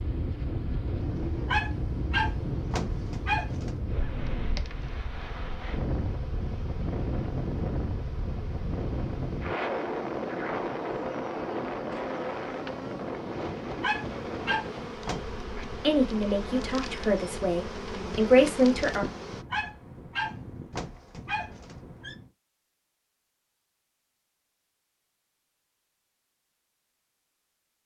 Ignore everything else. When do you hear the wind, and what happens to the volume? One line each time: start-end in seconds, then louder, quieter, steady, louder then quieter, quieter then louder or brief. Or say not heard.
0.0-22.4 quieter.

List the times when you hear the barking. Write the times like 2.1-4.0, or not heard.
1.4-3.8, 13.8-15.3, 19.5-22.1.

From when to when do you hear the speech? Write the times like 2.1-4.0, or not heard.
15.8-19.1.